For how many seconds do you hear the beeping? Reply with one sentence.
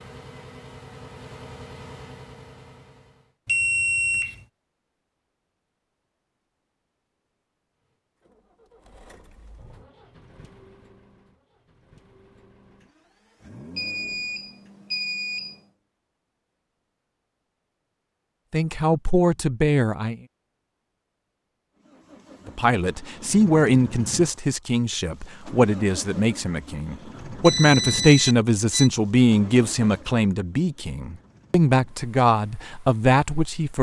The beeping can be heard for 4 seconds in total.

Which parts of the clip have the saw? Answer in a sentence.
You can't hear the saw here.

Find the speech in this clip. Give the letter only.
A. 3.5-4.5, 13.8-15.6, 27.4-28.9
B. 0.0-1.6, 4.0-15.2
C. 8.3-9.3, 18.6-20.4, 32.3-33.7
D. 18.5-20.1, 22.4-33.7
D.